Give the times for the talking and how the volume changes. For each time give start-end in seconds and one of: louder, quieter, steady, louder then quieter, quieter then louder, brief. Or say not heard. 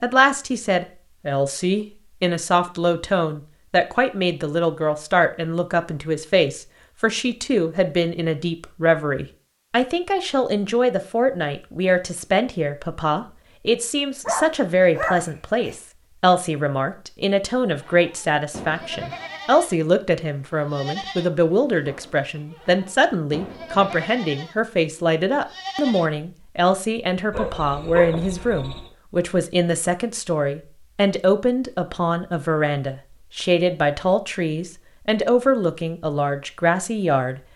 0.0-37.4 steady.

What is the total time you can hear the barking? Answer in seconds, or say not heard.
3 s.